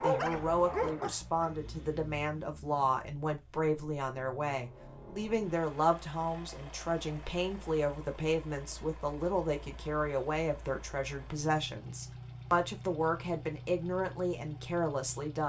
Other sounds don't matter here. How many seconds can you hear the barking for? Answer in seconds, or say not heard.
2 s.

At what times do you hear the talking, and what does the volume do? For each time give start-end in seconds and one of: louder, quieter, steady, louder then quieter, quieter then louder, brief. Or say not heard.
0.0-15.4 steady.